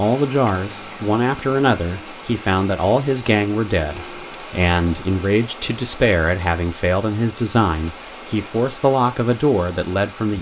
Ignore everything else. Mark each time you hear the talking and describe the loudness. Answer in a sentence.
You can hear the talking from 0.0 to 10.3 s, at a steady volume.